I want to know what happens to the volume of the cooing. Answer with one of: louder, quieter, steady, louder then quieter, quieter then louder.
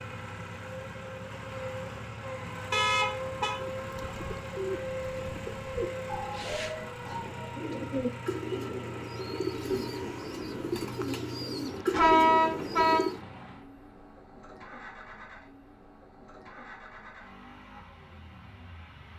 louder.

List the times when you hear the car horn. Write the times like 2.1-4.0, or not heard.
2.7-3.5, 11.9-13.0.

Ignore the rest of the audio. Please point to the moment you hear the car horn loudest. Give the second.
12 s.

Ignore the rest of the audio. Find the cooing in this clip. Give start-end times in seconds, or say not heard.
3.7-13.2.